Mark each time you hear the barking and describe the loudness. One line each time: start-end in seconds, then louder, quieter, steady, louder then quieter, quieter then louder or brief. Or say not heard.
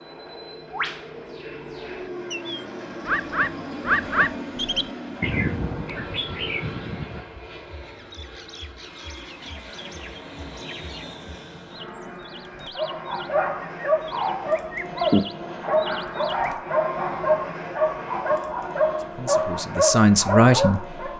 12.8-21.1 steady.